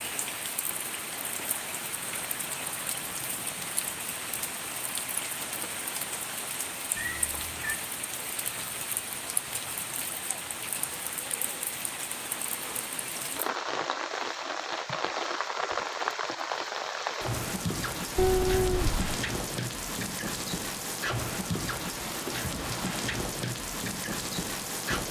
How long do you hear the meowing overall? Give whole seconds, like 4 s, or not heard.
2 s.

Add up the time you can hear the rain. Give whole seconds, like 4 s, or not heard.
25 s.